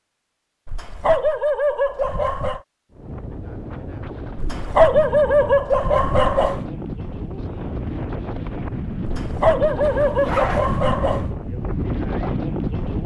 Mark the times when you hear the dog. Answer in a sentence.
You can hear the dog from 0.7 to 2.6 s, from 4.3 to 6.6 s and from 9.0 to 11.3 s.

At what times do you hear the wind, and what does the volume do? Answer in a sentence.
The wind can be heard from 2.9 to 13.0 s, getting louder.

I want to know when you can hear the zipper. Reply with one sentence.
The zipper can be heard from 9.8 to 10.9 s.